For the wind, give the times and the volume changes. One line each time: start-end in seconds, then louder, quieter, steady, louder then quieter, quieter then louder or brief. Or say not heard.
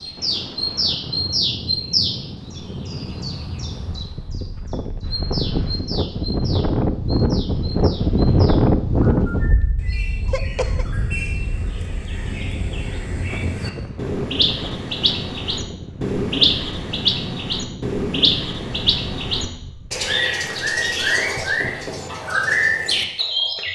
0.0-20.1 louder then quieter.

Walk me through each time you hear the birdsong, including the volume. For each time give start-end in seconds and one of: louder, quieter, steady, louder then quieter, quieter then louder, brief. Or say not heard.
0.0-23.7 quieter then louder.